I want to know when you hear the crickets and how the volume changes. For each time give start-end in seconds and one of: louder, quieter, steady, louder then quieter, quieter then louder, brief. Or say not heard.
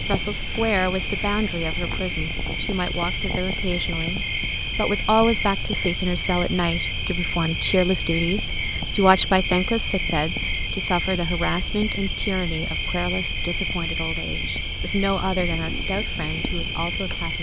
0.0-17.3 steady.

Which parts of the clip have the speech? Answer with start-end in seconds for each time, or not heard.
0.1-17.3.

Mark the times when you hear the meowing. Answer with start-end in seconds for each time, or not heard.
not heard.